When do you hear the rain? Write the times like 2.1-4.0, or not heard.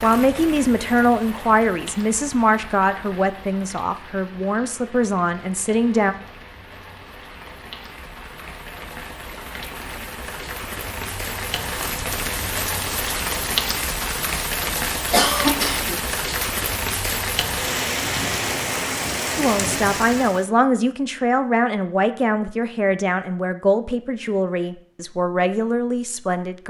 0.0-20.4.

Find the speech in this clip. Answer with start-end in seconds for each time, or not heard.
0.0-6.2, 19.4-26.6.